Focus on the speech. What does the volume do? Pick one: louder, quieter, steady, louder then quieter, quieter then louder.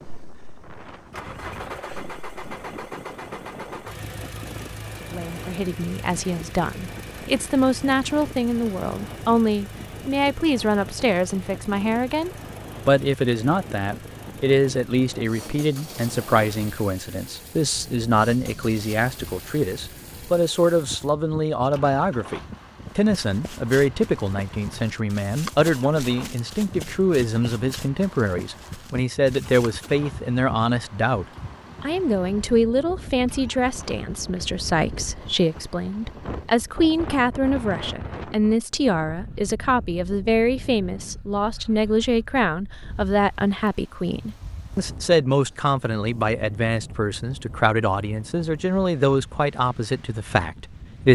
steady.